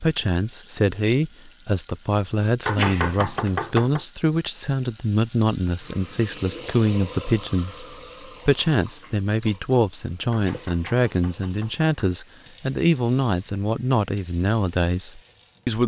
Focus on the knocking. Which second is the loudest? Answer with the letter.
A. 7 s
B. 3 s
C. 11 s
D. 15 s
B.